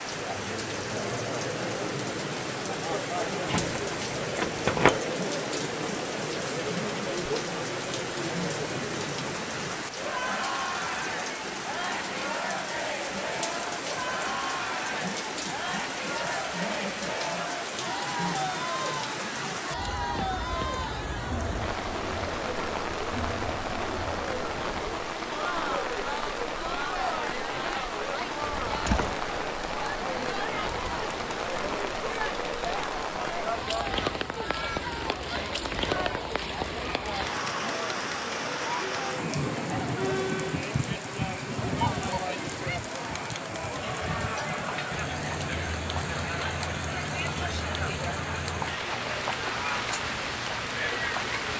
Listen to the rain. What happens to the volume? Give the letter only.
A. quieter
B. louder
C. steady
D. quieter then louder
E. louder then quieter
C.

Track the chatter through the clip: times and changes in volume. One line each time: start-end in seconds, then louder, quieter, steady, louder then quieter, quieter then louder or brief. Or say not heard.
0.0-51.5 steady.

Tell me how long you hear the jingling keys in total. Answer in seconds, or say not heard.
2 s.